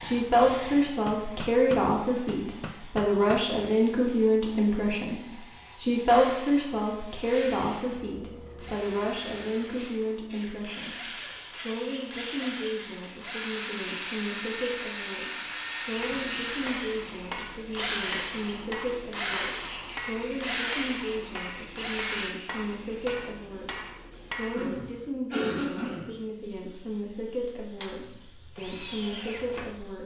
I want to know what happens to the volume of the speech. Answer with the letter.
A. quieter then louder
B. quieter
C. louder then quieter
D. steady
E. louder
B.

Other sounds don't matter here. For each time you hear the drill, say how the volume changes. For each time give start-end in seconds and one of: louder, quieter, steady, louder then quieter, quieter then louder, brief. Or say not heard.
6.0-22.3 louder
27.8-29.9 brief.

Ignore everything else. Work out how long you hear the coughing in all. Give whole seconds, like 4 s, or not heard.
2 s.